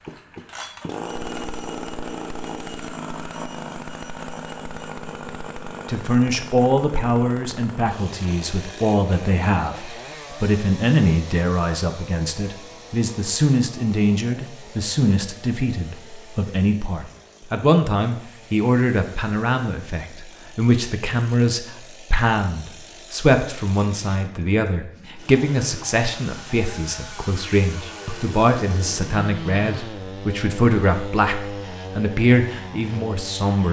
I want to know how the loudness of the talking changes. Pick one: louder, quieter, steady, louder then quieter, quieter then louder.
steady.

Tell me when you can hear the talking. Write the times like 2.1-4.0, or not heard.
5.8-33.6.